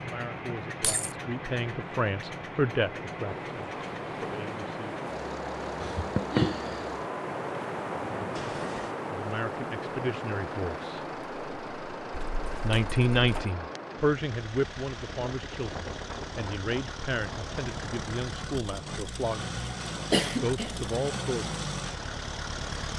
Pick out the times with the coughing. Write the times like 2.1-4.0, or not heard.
5.8-6.8, 20.1-20.9.